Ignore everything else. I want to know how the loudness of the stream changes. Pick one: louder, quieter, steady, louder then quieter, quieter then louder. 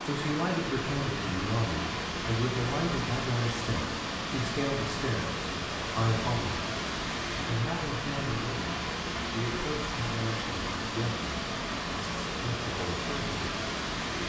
steady.